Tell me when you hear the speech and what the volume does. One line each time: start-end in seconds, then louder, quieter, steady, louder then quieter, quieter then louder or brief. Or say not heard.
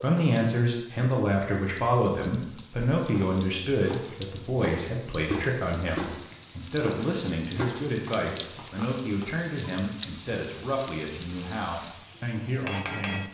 0.0-13.3 quieter.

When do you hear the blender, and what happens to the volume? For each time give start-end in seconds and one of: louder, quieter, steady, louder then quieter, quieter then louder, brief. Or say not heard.
not heard.